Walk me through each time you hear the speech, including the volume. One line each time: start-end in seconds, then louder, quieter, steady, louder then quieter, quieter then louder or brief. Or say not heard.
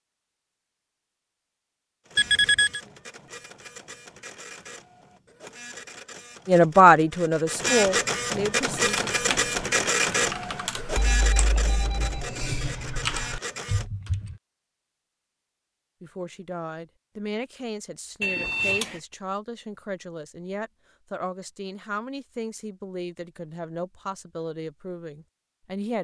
6.5-9.1 brief
16.0-25.9 steady.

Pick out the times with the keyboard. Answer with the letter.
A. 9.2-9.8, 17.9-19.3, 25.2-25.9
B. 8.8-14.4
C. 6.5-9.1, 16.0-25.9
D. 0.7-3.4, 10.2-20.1
B.